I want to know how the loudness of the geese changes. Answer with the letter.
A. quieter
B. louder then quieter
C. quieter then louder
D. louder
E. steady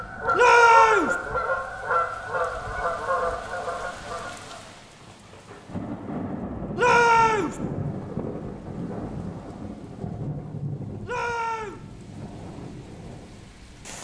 A.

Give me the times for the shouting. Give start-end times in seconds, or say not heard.
0.3-1.1, 6.8-7.5, 11.1-11.8.